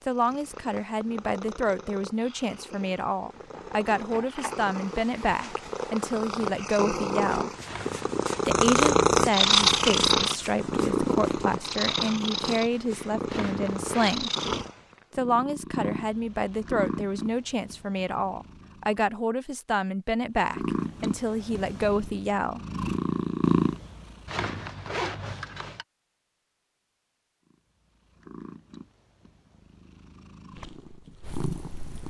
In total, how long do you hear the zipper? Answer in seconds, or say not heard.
3 s.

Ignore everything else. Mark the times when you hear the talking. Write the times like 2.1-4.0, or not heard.
0.1-7.5, 8.4-14.3, 15.2-22.6.